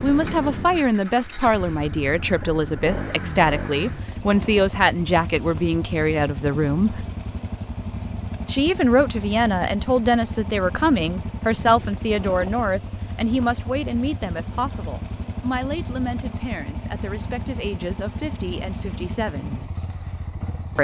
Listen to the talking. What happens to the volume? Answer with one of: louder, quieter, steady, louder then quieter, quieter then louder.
quieter.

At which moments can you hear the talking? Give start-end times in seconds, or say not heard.
0.0-7.0, 8.4-19.6.